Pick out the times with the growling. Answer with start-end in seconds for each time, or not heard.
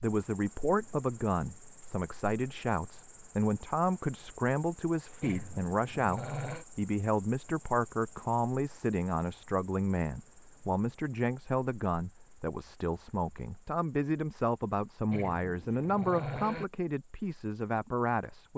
5.2-6.7, 15.1-16.6.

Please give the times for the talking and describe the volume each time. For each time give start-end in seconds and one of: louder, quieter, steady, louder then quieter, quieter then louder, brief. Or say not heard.
0.0-18.5 steady.